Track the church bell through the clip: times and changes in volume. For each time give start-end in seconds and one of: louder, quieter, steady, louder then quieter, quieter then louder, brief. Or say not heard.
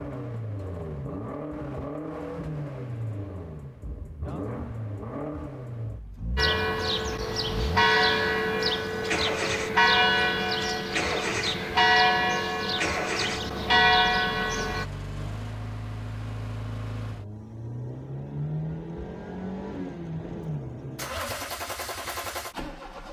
6.3-14.8 steady.